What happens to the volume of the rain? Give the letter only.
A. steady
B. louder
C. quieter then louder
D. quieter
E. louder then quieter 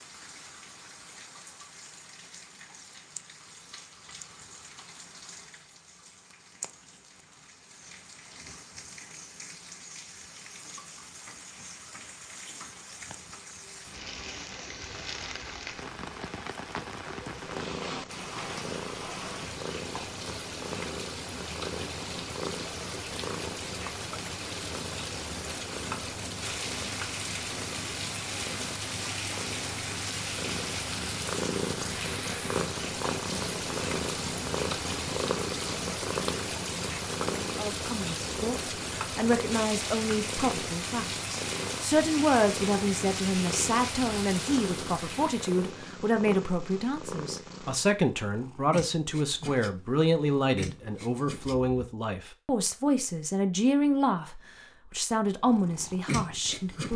B.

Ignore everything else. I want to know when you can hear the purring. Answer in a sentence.
You can hear the purring from 17.4 to 51.9 s and from 55.5 to 56.9 s.